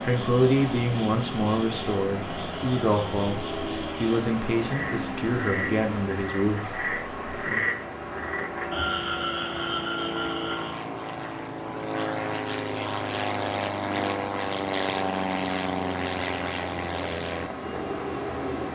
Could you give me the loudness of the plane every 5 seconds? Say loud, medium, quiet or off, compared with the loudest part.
medium, medium, loud, loud.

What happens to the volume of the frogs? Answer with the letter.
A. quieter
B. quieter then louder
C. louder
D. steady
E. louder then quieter
C.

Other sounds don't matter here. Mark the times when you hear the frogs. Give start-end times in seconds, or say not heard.
0.0-10.8.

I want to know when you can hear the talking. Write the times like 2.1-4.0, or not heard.
0.0-7.7.